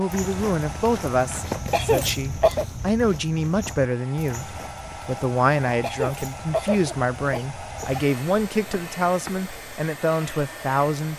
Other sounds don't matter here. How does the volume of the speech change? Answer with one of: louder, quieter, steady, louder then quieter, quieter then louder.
steady.